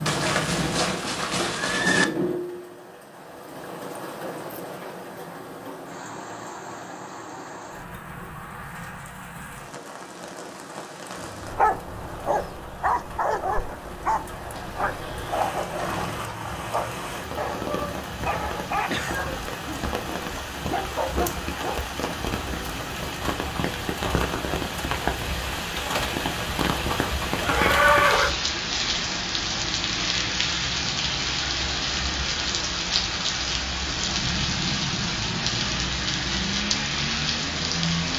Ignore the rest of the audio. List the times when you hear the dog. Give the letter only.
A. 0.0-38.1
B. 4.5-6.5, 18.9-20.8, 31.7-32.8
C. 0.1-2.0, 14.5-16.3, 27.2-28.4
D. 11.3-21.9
D.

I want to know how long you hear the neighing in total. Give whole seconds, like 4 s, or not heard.
5 s.